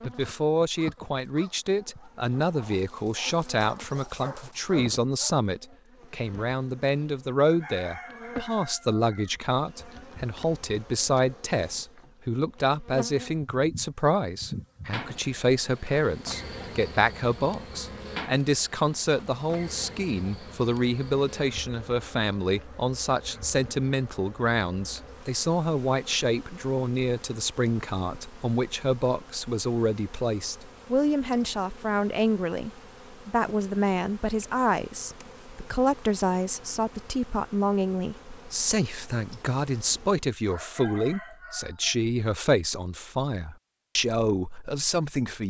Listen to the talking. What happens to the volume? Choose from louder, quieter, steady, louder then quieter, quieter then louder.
steady.